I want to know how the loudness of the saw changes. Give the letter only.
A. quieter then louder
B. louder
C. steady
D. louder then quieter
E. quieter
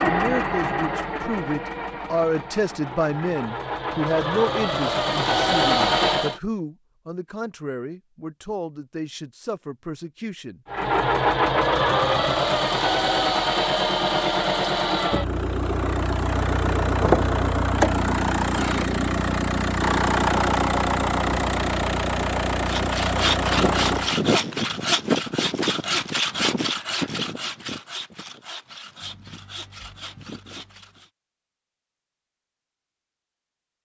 E.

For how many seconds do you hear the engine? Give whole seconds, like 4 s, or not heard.
20 s.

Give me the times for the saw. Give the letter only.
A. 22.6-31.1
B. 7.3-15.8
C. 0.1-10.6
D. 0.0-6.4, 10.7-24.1
A.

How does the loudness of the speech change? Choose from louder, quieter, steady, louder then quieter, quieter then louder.
quieter.